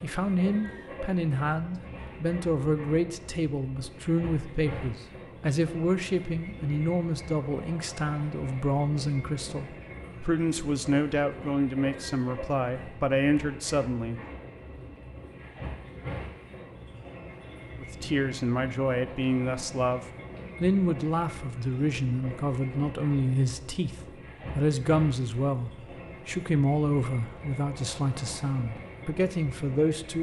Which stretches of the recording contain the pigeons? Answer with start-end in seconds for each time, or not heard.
not heard.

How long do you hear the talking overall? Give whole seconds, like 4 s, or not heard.
26 s.